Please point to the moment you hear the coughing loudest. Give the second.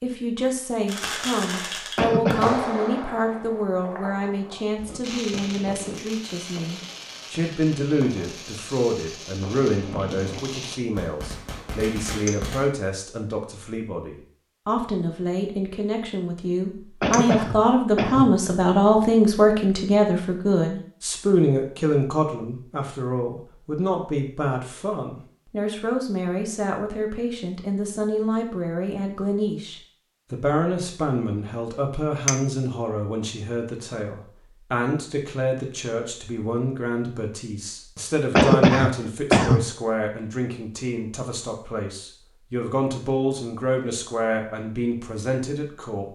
39 s.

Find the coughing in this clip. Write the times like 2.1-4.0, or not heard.
1.9-2.5, 17.0-18.3, 38.4-39.6.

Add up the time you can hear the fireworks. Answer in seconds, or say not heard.
12 s.